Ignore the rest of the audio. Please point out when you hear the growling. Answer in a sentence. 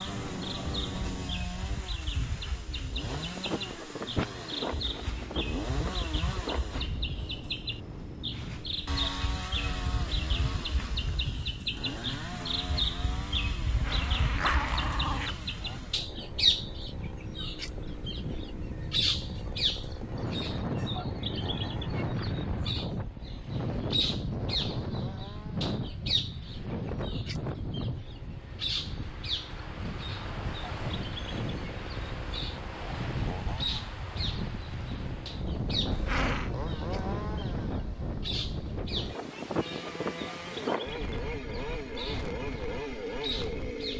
You can hear the growling from 13.7 to 15.4 s and from 35.9 to 36.5 s.